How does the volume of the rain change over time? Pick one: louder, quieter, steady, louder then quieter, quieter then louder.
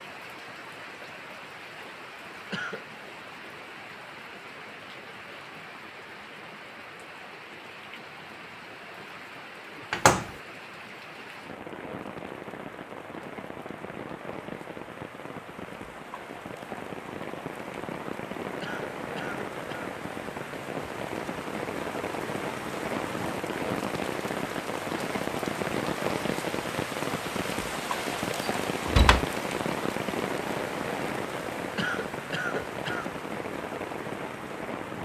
louder.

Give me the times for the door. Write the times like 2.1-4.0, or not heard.
9.9-10.3, 28.9-29.3.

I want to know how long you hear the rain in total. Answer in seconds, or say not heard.
35 s.